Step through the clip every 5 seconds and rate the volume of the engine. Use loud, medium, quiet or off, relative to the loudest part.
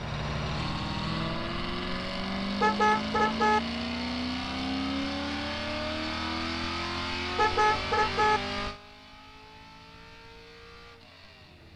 loud, loud, quiet.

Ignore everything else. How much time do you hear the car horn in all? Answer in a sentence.
You can hear the car horn for 2 seconds altogether.